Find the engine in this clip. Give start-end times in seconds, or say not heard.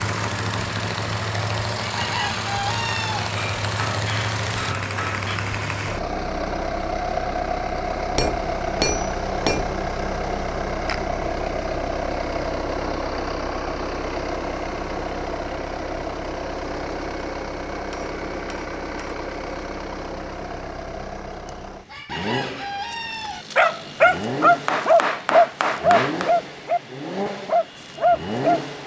0.0-28.8.